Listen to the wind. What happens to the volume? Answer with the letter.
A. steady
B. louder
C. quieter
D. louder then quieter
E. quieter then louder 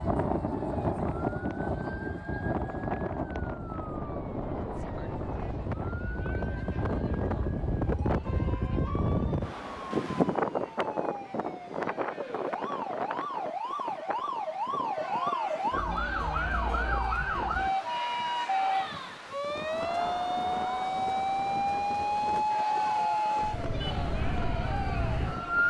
D.